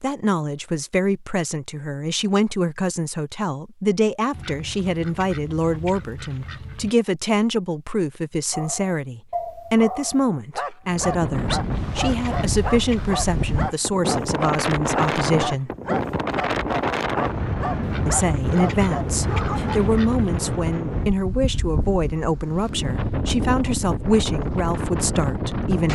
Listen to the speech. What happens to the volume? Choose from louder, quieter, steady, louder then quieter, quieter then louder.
steady.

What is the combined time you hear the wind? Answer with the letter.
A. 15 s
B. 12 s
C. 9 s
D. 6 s
A.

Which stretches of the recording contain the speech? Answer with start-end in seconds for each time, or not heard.
0.0-15.7, 18.1-25.8.